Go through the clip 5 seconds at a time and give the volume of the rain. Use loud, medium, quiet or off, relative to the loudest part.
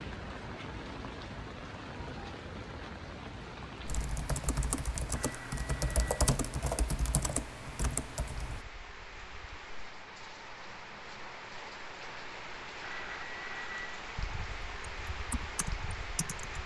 loud, medium, loud, loud.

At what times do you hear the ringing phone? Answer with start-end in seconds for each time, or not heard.
5.1-6.2, 12.8-14.0.